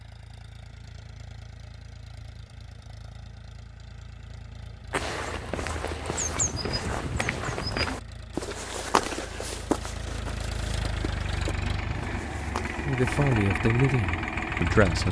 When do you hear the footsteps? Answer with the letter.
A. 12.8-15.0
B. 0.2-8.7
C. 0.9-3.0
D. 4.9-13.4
D.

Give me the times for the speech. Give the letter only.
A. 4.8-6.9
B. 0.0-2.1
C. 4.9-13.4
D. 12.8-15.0
D.